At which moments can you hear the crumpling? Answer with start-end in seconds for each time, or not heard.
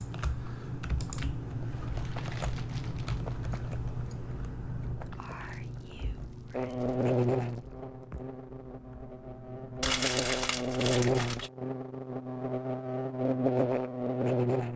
1.9-3.4, 5.2-7.7, 9.8-11.5.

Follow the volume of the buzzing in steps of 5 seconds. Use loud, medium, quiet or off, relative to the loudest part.
off, loud, loud.